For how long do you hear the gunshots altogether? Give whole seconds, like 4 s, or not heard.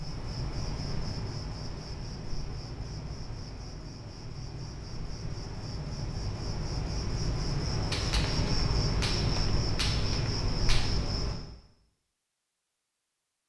3 s.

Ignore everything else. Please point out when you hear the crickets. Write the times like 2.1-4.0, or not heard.
0.0-11.4.